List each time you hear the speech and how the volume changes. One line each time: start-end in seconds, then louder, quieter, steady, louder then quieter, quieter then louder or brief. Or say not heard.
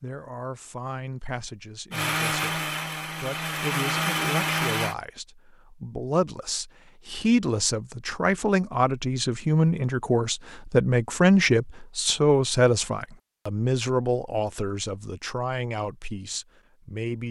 0.0-17.2 louder then quieter.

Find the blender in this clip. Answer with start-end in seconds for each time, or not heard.
1.9-5.0.